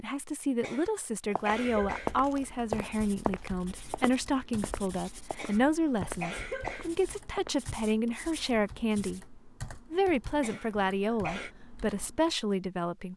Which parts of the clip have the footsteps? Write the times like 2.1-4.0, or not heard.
1.4-7.7.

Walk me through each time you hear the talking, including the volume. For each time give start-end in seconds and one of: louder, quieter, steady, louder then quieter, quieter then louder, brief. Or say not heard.
0.0-13.1 steady.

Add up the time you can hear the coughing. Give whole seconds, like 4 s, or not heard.
4 s.